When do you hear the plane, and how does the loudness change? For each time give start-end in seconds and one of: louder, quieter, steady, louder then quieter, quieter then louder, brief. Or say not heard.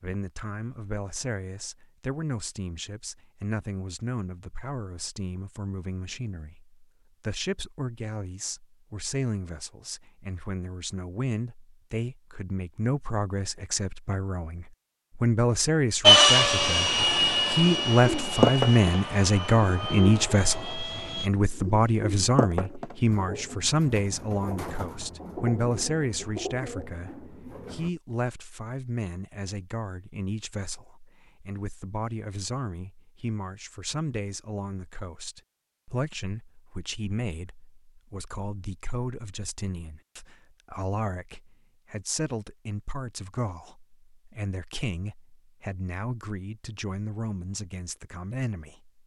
16.0-21.3 quieter.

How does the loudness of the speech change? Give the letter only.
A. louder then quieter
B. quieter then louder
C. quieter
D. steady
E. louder
A.